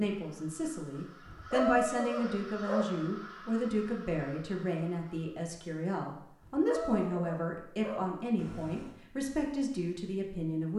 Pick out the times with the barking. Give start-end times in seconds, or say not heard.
1.2-2.9, 6.4-9.0.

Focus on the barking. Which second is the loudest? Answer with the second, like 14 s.
2 s.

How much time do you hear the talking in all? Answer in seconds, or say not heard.
11 s.